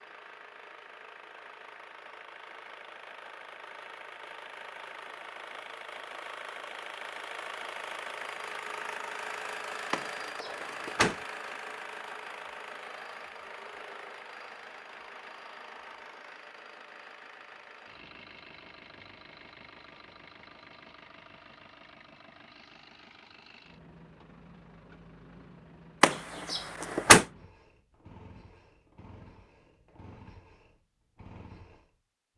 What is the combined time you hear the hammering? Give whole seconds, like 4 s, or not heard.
not heard.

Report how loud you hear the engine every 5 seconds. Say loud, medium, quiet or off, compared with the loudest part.
medium, loud, loud, medium, quiet, quiet, quiet.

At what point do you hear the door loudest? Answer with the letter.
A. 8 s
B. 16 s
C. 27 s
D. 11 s
C.